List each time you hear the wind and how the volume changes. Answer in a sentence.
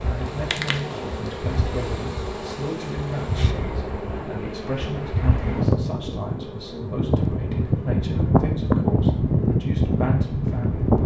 The wind can be heard from 0.0 to 11.0 s, getting louder.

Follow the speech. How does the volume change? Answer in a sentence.
The volume of the speech stays about the same.